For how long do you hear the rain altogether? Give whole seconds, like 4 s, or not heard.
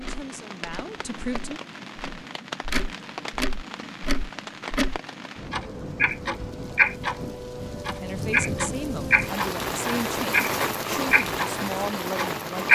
13 s.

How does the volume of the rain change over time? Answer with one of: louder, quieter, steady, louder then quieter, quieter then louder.
louder.